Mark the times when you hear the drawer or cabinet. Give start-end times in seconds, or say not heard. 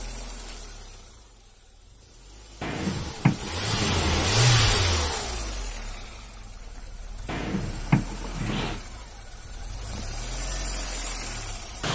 2.6-4.3, 7.2-8.8.